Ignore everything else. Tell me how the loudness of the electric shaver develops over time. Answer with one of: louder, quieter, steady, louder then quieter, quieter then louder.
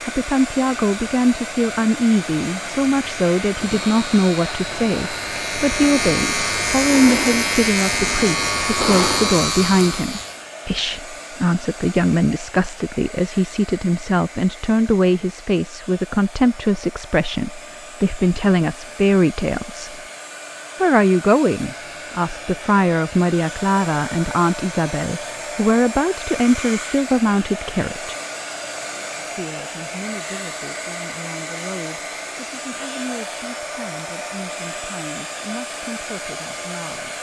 louder.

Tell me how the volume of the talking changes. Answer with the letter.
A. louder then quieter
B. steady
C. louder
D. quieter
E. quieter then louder
D.